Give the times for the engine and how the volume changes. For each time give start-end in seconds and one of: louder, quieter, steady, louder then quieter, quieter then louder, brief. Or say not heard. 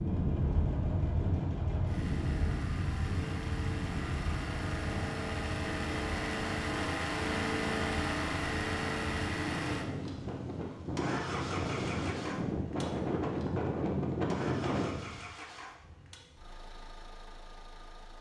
0.0-18.1 louder then quieter.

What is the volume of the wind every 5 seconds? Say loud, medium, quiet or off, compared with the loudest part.
loud, medium, loud, off.